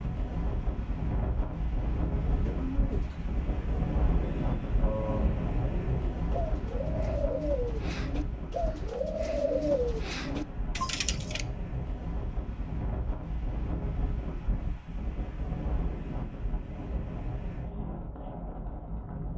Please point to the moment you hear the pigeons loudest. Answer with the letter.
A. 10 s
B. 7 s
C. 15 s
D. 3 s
A.